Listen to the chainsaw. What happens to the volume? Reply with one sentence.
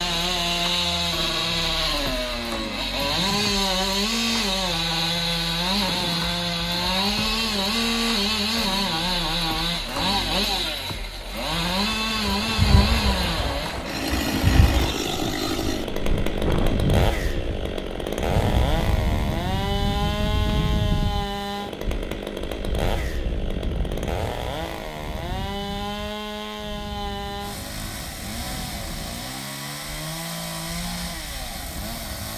The loudness of the chainsaw goes down.